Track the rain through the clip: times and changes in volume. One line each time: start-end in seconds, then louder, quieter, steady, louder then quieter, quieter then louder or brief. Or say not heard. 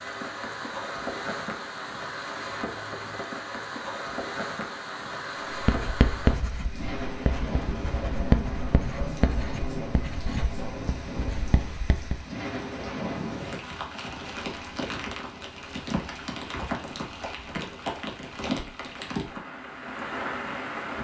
0.0-20.9 steady.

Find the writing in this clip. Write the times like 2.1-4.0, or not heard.
5.5-12.2.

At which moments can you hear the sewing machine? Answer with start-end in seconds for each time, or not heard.
not heard.